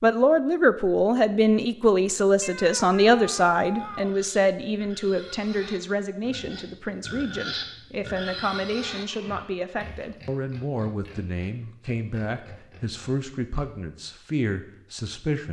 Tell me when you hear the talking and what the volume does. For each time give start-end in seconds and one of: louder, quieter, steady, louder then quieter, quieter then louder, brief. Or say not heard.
0.0-15.4 quieter.